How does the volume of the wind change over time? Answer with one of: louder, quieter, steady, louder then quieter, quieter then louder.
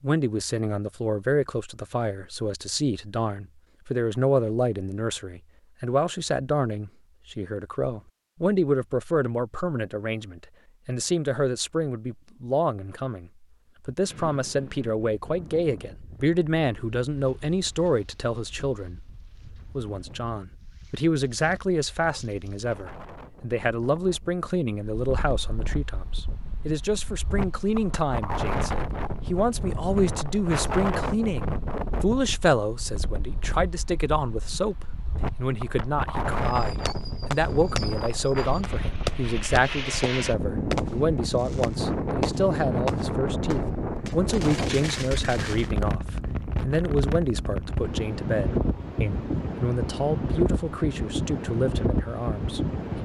louder.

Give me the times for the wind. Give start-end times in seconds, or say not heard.
14.1-52.9.